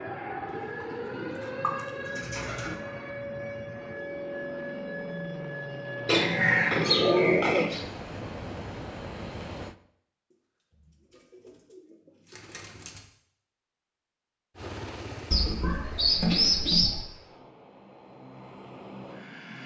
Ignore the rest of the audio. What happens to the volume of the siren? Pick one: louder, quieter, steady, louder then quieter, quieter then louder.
steady.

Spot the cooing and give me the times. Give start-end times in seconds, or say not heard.
0.5-2.8, 6.0-7.8, 11.1-13.1, 15.3-17.0.